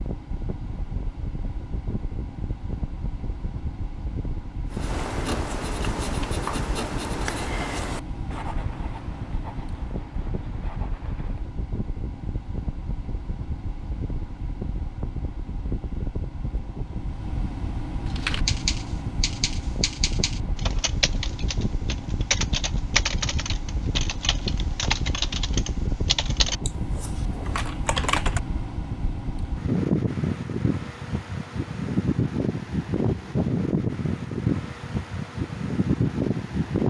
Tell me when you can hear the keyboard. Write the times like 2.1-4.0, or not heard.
18.1-28.4.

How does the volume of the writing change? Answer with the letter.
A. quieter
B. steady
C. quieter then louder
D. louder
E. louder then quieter
A.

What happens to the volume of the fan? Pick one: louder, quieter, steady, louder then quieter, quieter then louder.
louder.